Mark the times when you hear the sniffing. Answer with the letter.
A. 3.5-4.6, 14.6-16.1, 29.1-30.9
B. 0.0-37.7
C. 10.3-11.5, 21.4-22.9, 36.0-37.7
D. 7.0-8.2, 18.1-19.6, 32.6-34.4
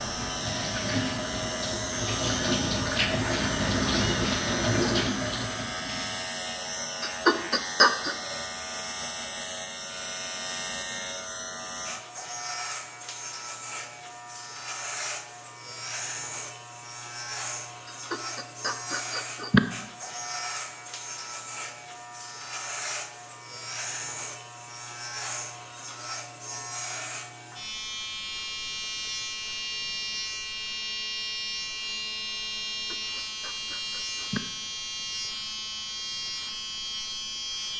D.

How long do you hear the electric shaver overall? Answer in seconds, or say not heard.
38 s.